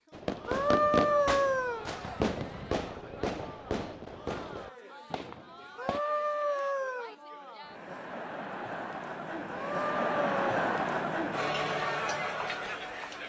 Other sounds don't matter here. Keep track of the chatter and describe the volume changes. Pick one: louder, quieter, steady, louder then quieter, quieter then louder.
louder.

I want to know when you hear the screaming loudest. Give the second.
1 s.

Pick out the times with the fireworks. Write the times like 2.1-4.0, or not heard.
0.1-6.0.